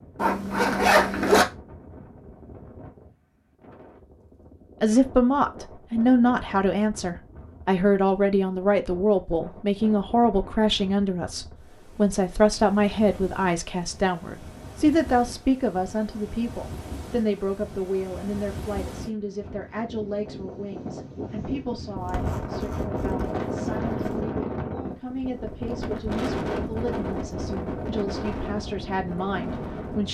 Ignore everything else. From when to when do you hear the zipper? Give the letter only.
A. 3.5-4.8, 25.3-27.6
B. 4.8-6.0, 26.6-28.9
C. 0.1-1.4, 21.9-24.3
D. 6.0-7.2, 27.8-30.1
C.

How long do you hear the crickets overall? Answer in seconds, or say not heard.
not heard.